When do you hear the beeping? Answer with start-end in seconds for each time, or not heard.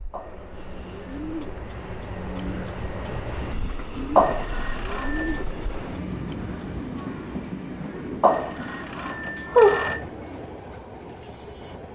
0.1-1.2, 4.2-5.5, 8.2-10.1.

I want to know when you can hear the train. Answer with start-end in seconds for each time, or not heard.
0.0-11.9.